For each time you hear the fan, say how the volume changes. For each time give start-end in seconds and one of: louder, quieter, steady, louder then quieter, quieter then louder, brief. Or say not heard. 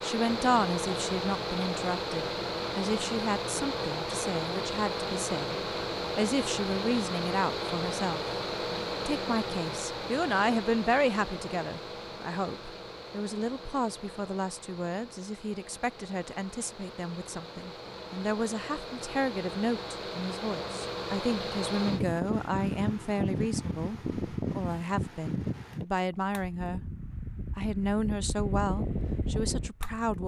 0.0-30.2 quieter then louder.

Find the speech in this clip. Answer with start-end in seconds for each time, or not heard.
0.0-5.5, 6.2-8.2, 9.1-26.9, 27.6-30.2.